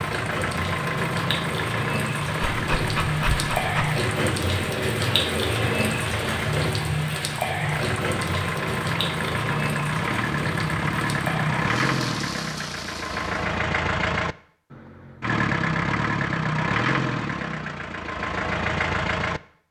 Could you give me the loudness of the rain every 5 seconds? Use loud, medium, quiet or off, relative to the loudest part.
loud, loud, medium, off.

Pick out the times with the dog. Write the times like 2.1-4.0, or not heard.
2.5-4.0.